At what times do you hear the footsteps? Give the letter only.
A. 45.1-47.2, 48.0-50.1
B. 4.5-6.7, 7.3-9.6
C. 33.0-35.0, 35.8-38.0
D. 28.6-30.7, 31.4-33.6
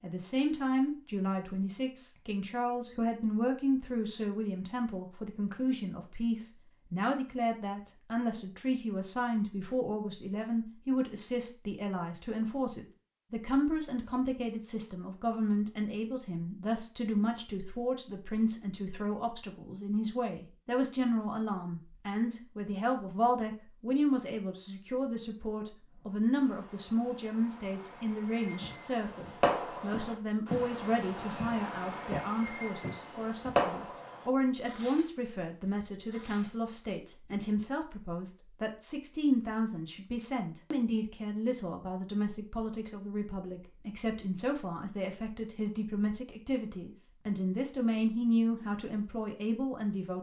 D.